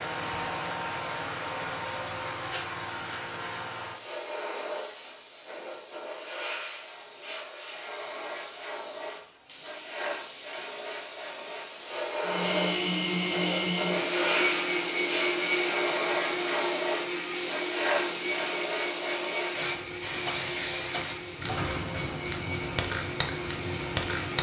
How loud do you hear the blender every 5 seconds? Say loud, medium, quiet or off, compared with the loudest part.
off, off, loud, loud, medium.